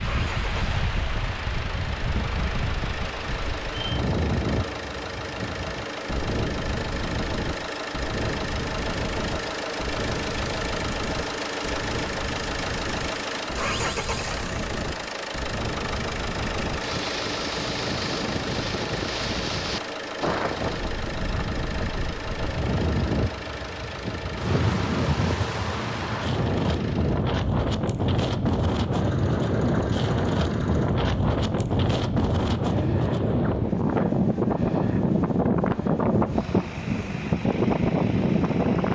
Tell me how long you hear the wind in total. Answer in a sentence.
The wind can be heard for 39 seconds in total.